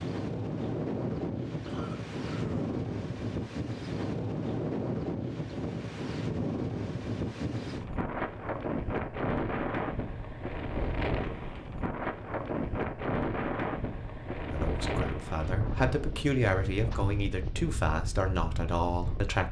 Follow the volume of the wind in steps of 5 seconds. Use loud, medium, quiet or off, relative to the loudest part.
loud, loud, loud, medium.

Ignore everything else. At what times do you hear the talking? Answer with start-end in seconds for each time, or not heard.
14.5-19.4.